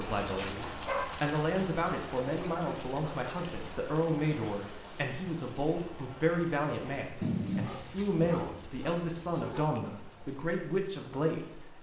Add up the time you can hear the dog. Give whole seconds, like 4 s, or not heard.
4 s.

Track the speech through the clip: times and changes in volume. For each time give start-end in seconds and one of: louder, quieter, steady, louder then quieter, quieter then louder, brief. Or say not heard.
0.0-11.7 steady.